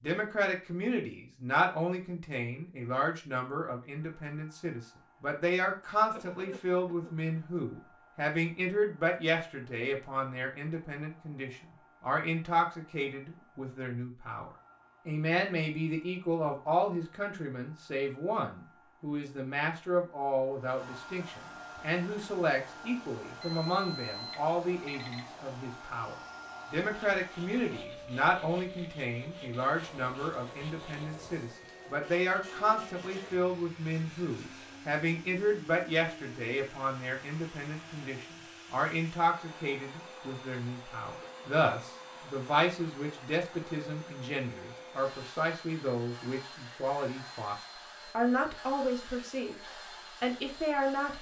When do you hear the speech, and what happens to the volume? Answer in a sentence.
The speech can be heard from 0.0 to 47.5 s, at a steady volume; briefly from 48.1 to 49.5 s; and briefly from 50.2 to 51.1 s.